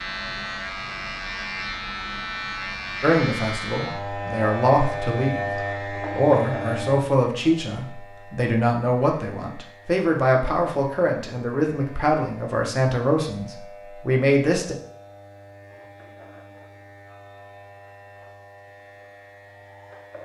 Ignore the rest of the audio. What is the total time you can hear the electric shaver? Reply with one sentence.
You can hear the electric shaver for 20 seconds altogether.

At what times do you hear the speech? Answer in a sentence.
The speech can be heard from 3.0 to 14.8 s.